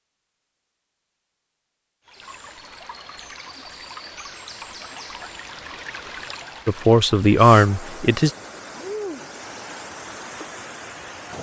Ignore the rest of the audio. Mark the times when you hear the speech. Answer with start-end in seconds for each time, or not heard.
6.7-8.3.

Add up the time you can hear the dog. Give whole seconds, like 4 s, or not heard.
not heard.